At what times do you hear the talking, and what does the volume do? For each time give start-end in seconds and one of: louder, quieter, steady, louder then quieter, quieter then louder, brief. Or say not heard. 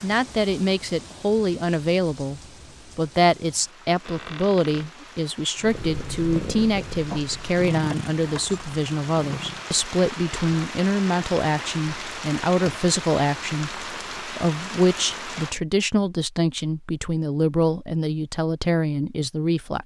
0.0-19.8 steady.